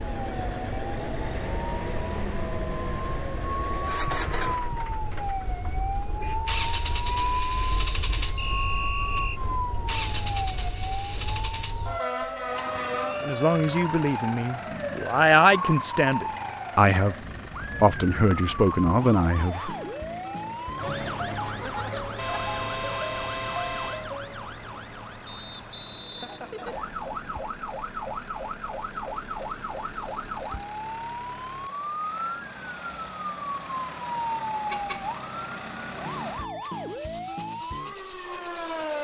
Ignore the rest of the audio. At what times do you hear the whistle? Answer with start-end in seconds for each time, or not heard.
8.3-9.4, 25.2-26.6.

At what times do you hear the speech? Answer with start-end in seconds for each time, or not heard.
13.2-17.1, 17.8-19.8.